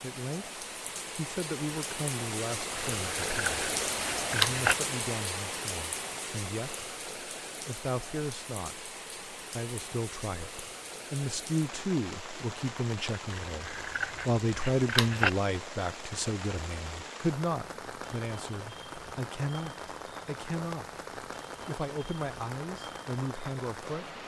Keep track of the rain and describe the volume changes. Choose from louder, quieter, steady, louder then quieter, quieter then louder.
quieter.